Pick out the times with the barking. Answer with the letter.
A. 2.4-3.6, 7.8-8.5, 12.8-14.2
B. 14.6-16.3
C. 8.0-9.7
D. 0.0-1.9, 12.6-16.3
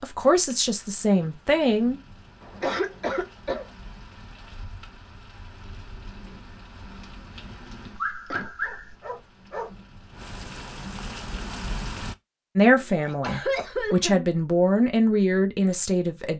C.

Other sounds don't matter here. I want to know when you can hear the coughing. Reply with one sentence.
The coughing can be heard from 2.4 to 3.6 s, from 7.8 to 8.5 s and from 12.8 to 14.2 s.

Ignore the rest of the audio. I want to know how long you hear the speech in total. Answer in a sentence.
You can hear the speech for 6 seconds altogether.